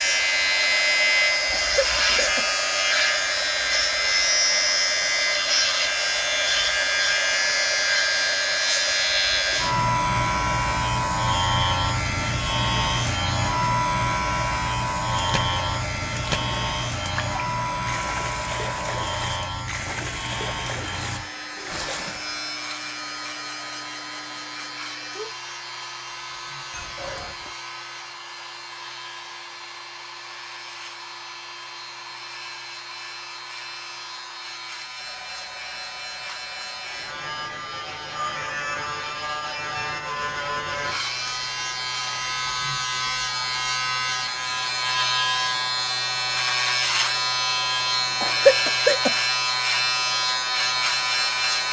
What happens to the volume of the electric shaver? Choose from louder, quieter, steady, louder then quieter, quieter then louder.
quieter then louder.